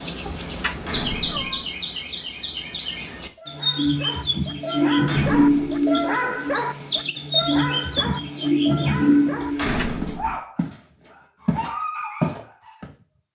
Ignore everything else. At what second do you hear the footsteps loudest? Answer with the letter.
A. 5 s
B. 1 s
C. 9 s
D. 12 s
D.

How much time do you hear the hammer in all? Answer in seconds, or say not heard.
not heard.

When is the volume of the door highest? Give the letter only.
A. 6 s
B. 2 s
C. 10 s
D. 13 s
C.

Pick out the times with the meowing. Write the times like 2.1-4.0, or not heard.
0.2-1.6, 9.4-10.4.